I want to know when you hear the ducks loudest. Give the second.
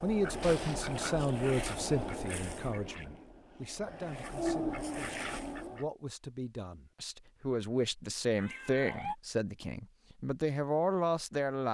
5 s.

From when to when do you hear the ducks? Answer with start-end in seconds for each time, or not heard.
0.0-5.9.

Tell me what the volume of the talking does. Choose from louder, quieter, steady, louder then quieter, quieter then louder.
quieter then louder.